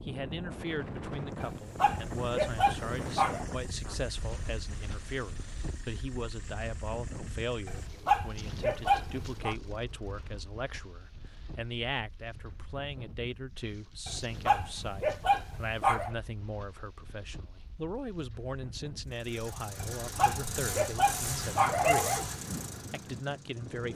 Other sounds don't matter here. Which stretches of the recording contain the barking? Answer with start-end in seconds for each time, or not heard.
1.4-3.5, 7.7-9.6, 14.1-16.1, 19.8-22.4.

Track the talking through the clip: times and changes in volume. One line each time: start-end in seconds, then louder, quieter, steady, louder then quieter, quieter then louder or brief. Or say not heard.
0.0-22.2 steady
22.9-23.9 brief.